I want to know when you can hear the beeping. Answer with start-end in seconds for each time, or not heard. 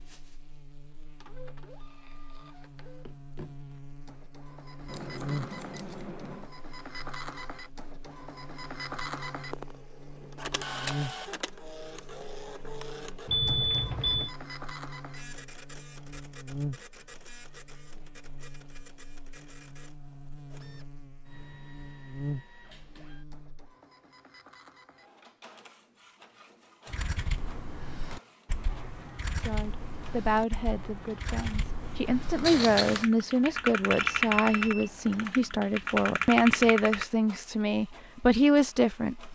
13.2-14.3, 33.9-35.2.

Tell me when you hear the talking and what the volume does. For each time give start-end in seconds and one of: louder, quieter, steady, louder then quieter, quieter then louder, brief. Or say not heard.
29.4-39.3 louder.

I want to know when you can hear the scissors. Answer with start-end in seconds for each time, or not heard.
4.8-6.5, 32.4-33.1.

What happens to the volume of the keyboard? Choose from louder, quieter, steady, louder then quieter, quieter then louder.
louder.